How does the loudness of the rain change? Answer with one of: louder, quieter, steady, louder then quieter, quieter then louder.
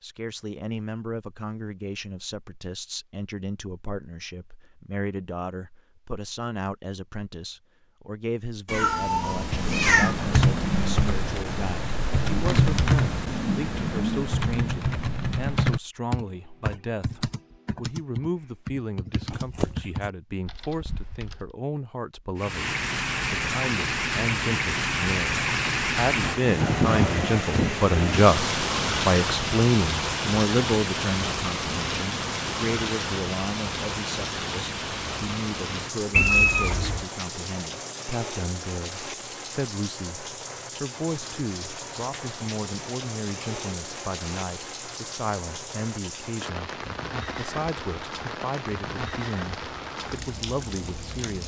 quieter.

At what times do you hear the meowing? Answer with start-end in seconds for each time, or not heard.
8.7-10.2, 19.3-19.9, 36.1-37.0.